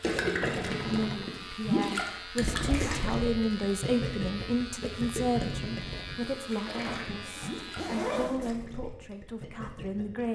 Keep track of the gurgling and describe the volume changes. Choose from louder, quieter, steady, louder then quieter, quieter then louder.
quieter.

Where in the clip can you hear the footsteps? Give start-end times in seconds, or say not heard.
not heard.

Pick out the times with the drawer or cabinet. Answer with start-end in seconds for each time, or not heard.
0.5-1.3, 6.8-7.6.